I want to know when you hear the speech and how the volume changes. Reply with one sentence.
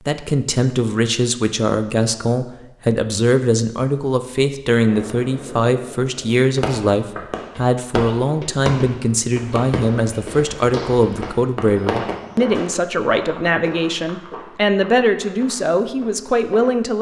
You can hear the speech from 0.1 to 16.9 s, at a steady volume.